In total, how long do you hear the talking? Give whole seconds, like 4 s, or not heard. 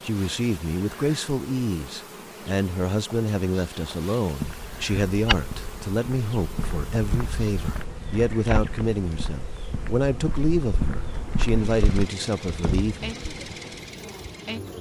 13 s.